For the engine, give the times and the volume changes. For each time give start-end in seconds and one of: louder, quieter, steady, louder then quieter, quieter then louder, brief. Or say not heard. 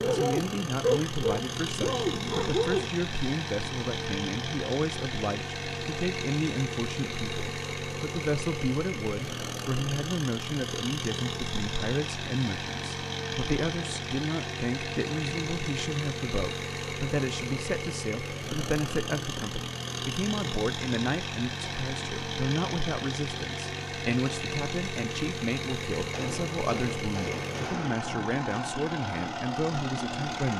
0.0-30.5 steady.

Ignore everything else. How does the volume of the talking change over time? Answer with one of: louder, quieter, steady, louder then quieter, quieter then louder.
steady.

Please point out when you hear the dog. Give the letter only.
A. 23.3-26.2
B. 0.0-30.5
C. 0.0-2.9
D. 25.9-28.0
C.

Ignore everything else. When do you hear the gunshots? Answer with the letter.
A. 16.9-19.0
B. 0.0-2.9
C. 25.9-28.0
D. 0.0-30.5
C.